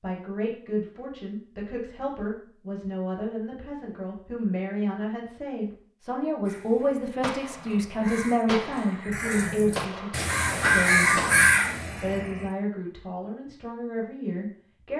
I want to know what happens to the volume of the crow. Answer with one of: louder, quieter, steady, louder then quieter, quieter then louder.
louder.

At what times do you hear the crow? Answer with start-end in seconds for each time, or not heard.
6.5-12.4.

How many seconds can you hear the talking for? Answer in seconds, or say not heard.
15 s.